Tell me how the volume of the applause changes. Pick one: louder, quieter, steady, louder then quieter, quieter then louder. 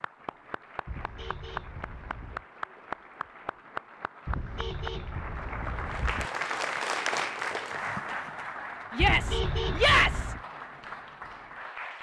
louder then quieter.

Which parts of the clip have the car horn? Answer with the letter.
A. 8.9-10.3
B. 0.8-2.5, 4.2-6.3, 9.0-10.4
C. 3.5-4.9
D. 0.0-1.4
B.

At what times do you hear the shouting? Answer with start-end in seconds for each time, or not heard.
8.9-10.3.